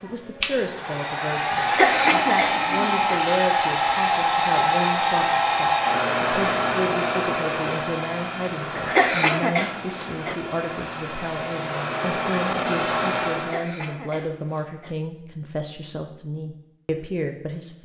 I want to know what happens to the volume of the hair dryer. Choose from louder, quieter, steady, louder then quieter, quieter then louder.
quieter then louder.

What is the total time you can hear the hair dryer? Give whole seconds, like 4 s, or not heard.
14 s.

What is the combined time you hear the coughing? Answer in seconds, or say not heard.
5 s.